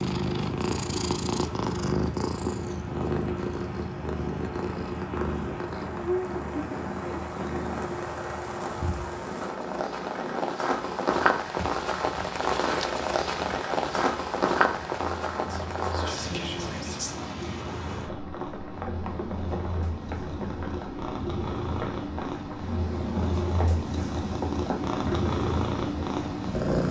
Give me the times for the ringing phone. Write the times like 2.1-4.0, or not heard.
not heard.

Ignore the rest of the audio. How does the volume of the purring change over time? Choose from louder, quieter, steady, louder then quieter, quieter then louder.
quieter then louder.